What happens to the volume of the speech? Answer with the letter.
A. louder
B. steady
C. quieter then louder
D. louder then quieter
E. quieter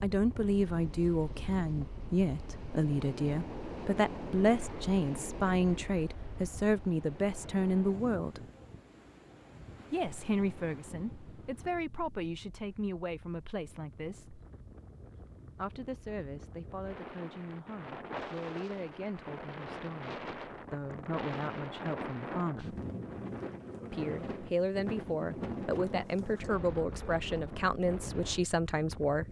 C.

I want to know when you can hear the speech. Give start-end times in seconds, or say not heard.
0.0-8.4, 9.9-14.4, 15.6-22.8, 23.9-29.2.